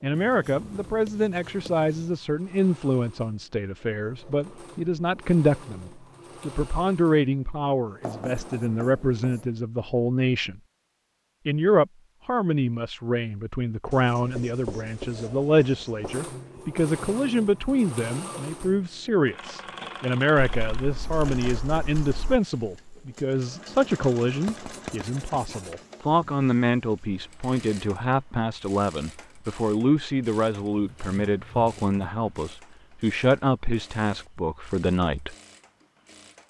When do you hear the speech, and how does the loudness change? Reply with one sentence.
You can hear the speech from 0.0 to 10.6 s, at a steady volume; and from 11.4 to 35.4 s, at a steady volume.